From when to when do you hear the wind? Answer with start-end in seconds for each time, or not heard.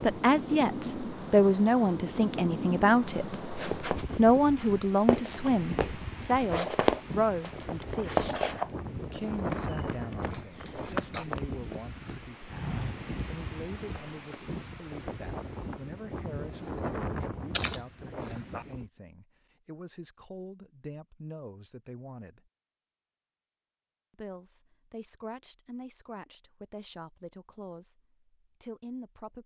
0.0-18.9.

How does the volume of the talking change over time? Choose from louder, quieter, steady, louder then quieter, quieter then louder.
quieter.